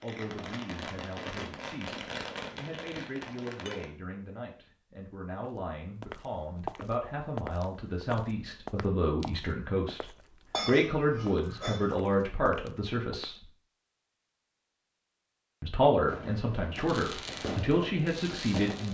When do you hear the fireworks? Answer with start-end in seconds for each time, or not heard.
0.0-3.9, 16.1-18.8.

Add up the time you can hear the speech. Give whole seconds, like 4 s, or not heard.
17 s.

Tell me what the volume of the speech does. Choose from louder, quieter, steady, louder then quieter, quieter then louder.
louder.